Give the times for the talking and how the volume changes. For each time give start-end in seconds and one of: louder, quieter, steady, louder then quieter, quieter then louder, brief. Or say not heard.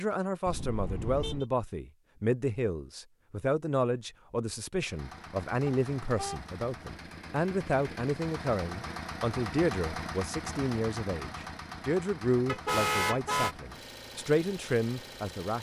0.0-15.5 steady.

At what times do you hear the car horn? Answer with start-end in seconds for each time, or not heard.
0.5-1.4, 5.7-6.5, 12.4-13.6.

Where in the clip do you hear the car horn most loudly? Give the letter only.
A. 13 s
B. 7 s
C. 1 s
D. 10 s
A.